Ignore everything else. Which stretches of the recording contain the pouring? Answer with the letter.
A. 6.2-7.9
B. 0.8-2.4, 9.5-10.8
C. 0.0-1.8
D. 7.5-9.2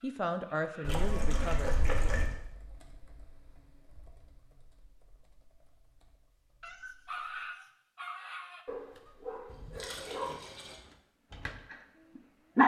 B.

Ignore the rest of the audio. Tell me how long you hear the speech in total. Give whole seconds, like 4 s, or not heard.
2 s.